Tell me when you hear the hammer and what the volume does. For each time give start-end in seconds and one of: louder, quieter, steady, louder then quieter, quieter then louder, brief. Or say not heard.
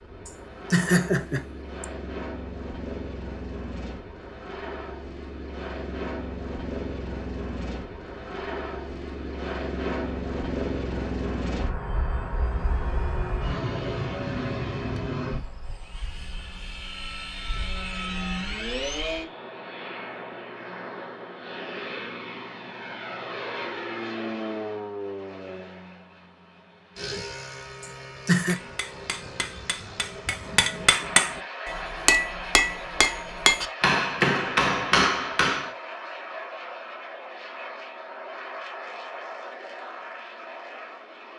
28.4-35.7 louder.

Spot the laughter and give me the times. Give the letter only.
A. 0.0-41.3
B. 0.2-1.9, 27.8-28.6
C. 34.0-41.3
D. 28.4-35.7
B.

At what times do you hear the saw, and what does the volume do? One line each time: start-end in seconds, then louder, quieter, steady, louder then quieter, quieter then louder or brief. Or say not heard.
not heard.